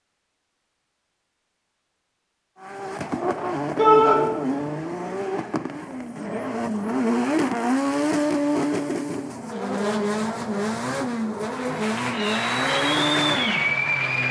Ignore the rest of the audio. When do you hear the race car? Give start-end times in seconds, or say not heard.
2.6-14.2.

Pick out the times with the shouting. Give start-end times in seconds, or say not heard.
3.8-4.2.